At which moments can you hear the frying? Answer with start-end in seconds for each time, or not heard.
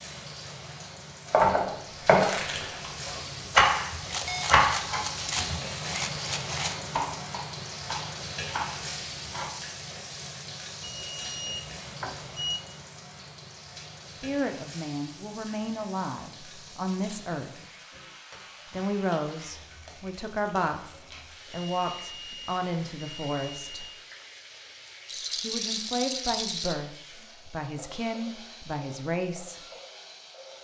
0.0-30.5.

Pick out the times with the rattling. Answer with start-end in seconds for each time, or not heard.
4.0-6.8, 25.1-26.8.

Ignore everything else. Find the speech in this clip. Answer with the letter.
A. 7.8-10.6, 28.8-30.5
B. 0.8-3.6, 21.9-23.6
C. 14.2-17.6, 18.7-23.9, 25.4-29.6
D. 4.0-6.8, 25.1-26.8
C.